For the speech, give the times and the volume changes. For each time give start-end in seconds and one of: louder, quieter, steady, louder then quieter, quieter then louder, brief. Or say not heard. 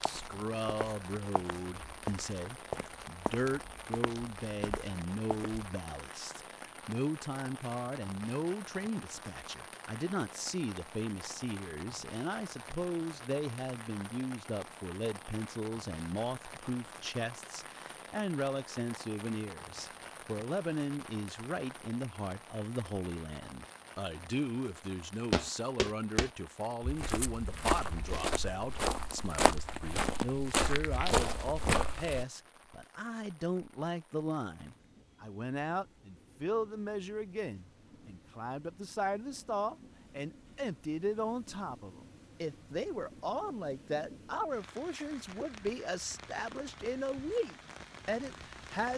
0.0-48.9 steady.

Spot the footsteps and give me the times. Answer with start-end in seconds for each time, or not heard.
0.0-5.7, 25.3-32.2.